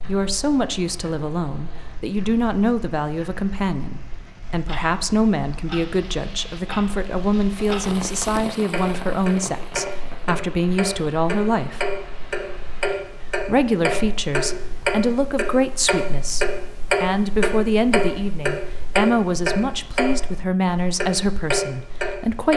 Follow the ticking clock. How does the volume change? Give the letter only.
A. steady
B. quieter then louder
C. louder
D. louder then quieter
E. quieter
C.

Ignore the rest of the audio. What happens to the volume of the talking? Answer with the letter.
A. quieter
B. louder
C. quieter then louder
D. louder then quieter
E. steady
E.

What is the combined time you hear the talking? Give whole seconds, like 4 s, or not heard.
21 s.